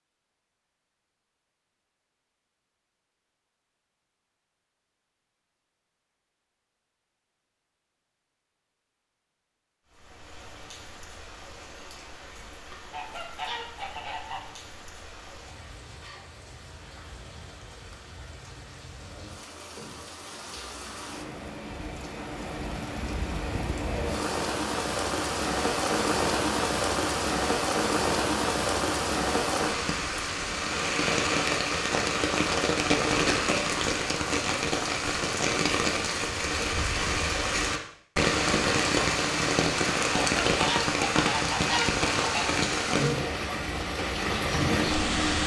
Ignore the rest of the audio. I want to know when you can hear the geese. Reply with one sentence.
You can hear the geese from 12.9 to 14.4 s and from 40.2 to 42.6 s.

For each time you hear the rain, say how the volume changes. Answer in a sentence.
The rain can be heard from 9.8 to 45.4 s, getting louder.